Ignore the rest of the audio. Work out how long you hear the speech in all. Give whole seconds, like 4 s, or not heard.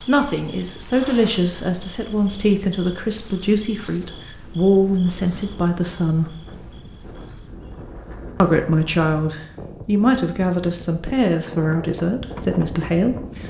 11 s.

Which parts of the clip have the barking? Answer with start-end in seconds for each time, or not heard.
not heard.